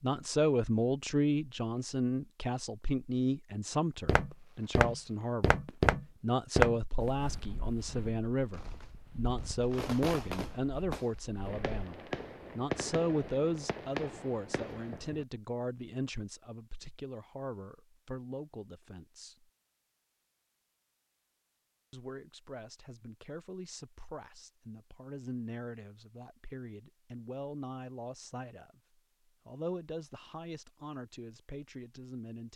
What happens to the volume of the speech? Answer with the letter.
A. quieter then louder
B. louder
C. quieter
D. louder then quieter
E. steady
C.